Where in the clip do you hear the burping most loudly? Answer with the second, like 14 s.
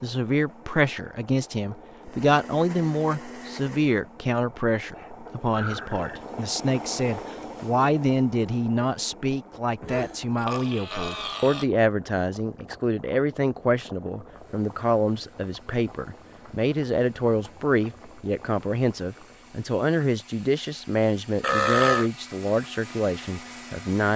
22 s.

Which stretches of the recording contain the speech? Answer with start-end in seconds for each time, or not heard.
0.0-24.1.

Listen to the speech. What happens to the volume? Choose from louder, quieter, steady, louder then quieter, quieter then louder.
steady.